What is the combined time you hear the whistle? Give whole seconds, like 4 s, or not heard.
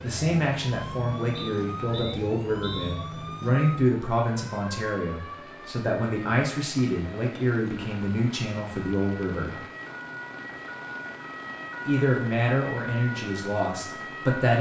2 s.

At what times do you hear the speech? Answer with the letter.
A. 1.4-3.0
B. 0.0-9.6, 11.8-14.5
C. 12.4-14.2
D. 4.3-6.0
B.